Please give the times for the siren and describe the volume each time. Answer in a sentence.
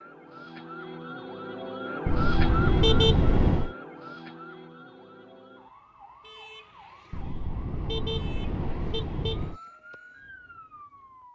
You can hear the siren from 0.0 to 11.2 s, getting quieter.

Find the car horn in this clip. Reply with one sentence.
The car horn can be heard from 2.0 to 3.8 s and from 7.1 to 9.6 s.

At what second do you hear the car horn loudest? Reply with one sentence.
The loudest moment of the car horn is at 3 seconds.